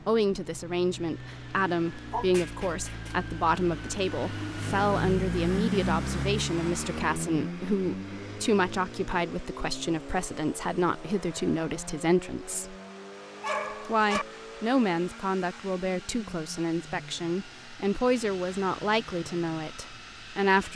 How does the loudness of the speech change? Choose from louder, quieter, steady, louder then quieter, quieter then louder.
steady.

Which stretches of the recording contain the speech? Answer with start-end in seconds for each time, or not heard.
0.1-12.8, 13.8-20.7.